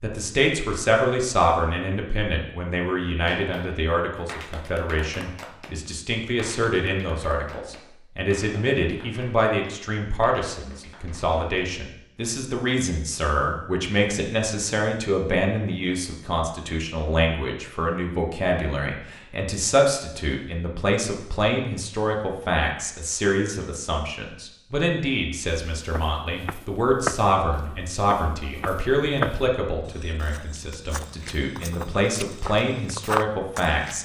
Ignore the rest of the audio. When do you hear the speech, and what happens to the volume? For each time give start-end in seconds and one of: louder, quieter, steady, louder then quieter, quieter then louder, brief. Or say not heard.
0.0-34.0 steady.